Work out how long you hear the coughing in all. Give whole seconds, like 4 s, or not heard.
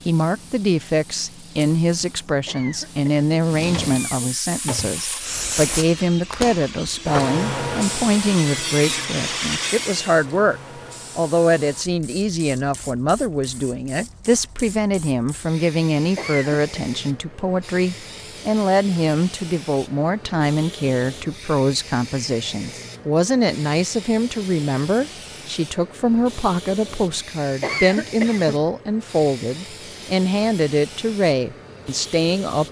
4 s.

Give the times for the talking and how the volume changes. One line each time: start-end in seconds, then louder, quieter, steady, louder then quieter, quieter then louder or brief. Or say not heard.
0.1-32.6 steady.